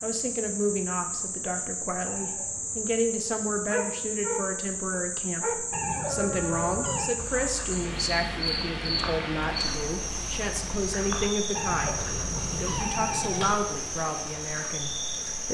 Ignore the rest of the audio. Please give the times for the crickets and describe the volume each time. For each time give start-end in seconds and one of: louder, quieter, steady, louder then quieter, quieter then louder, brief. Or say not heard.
0.0-15.5 steady.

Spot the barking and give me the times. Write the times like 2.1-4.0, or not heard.
3.6-12.9.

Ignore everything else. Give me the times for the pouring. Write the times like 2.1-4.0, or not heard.
not heard.